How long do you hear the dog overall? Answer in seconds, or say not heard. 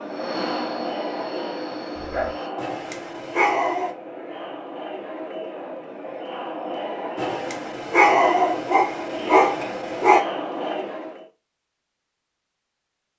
5 s.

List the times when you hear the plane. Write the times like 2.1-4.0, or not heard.
0.0-2.5.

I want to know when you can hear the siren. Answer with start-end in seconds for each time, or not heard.
not heard.